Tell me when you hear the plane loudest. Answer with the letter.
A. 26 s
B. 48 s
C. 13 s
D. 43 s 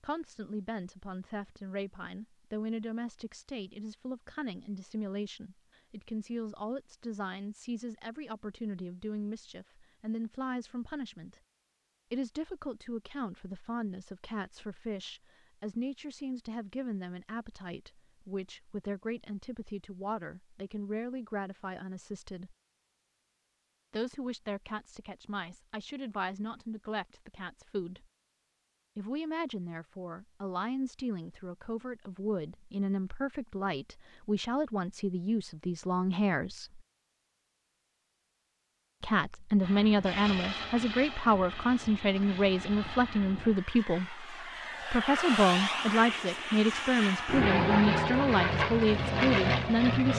B.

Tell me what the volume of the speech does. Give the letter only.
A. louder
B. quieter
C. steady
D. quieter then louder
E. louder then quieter
A.